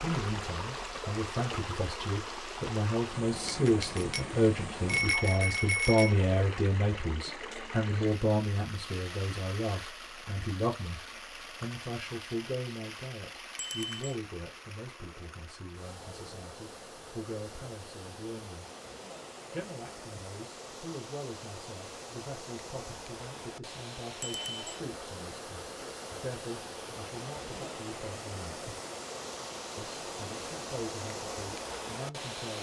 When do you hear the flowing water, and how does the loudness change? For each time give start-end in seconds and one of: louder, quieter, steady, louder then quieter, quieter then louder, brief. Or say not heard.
0.0-32.5 quieter then louder.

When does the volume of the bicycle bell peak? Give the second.
5 s.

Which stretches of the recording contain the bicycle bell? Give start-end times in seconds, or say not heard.
3.5-6.2, 13.6-14.2, 24.2-24.8.